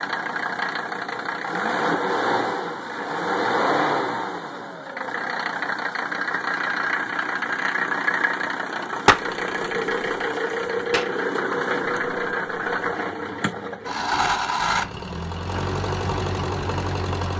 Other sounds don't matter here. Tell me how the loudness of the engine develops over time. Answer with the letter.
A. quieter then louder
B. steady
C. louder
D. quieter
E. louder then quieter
B.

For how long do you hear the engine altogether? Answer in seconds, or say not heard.
17 s.